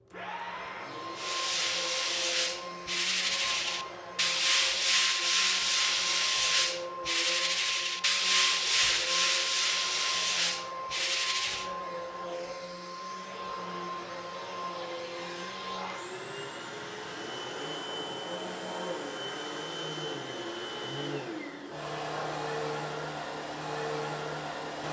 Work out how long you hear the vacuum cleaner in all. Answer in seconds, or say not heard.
25 s.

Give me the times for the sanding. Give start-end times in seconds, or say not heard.
1.1-11.7.